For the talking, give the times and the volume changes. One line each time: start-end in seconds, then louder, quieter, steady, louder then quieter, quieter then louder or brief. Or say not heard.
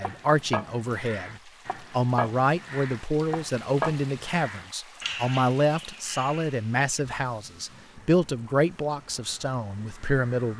0.0-10.5 steady.